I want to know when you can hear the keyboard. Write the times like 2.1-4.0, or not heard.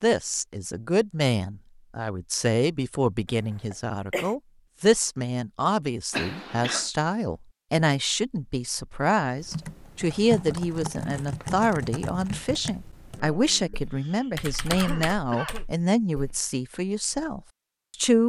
9.4-16.4.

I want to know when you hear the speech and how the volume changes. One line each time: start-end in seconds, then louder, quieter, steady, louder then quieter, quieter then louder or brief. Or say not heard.
0.0-18.2 steady.